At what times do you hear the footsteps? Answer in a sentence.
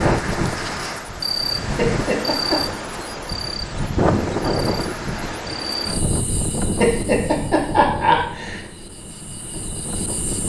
The footsteps can't be heard in this clip.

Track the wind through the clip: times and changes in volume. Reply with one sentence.
You can hear the wind from 0.0 to 10.4 s, getting quieter.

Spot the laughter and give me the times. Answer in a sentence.
The laughter can be heard from 1.8 to 2.6 s and from 6.8 to 8.6 s.